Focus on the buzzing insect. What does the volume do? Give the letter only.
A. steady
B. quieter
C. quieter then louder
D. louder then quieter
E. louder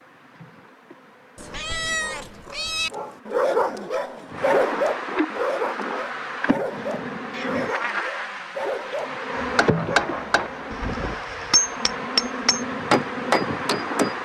E.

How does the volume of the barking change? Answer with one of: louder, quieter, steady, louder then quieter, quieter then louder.
quieter.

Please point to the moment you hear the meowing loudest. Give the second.
2 s.